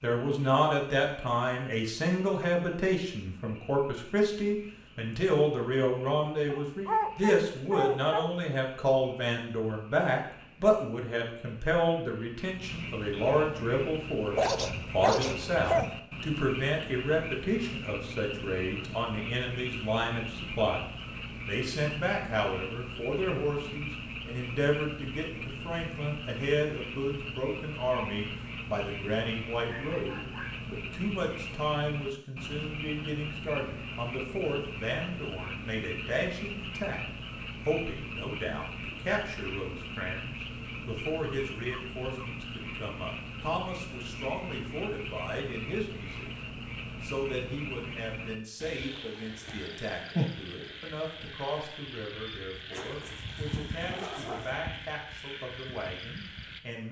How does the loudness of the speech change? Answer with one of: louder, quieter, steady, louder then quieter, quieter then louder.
quieter.